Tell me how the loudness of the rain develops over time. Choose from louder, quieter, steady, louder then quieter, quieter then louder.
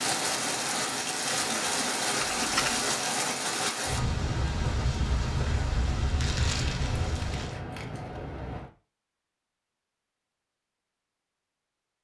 steady.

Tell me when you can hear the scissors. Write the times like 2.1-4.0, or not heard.
2.2-2.9, 6.8-8.7.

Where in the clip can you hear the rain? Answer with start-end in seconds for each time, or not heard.
0.0-7.6.